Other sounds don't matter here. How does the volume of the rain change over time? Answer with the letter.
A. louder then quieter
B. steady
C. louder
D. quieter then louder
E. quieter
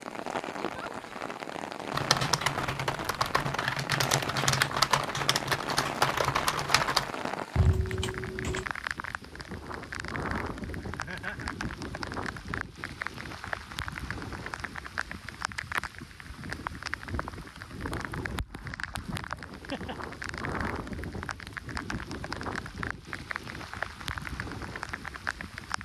B.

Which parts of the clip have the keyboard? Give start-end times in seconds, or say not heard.
1.9-8.7.